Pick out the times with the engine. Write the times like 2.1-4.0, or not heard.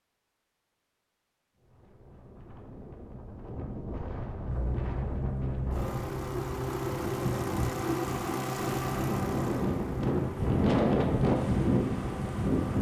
4.5-12.7.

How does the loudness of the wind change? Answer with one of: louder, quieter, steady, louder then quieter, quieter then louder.
louder.